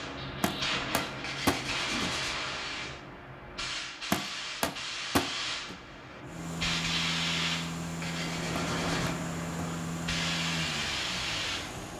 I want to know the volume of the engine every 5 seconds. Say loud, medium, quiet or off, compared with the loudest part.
off, loud, loud.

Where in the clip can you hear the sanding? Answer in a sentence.
The sanding can be heard from 1.1 to 2.4 s and from 7.8 to 9.2 s.